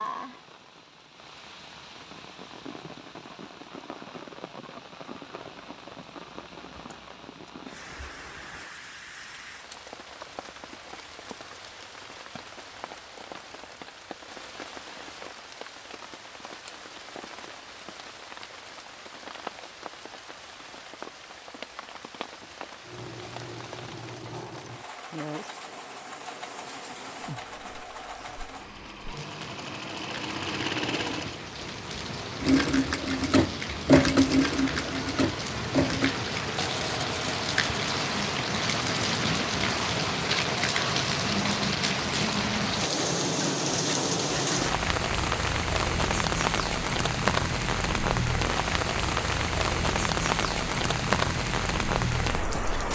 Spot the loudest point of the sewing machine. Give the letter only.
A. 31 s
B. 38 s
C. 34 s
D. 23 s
C.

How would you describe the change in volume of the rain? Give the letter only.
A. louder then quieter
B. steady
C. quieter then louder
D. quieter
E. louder
E.